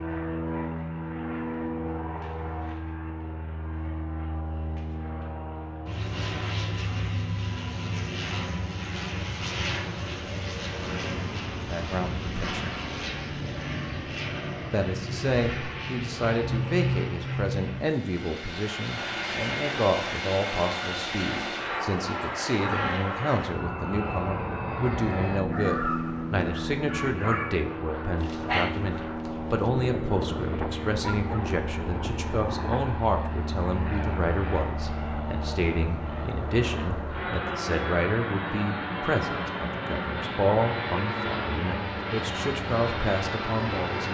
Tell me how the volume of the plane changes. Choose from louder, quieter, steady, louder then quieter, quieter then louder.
steady.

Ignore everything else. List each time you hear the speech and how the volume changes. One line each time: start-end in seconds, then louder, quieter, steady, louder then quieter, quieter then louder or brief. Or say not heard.
11.7-12.8 brief
14.7-44.0 steady.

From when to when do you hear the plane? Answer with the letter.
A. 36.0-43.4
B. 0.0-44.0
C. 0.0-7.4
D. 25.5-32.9
B.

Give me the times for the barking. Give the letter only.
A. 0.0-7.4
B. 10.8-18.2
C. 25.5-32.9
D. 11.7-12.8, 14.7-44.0
C.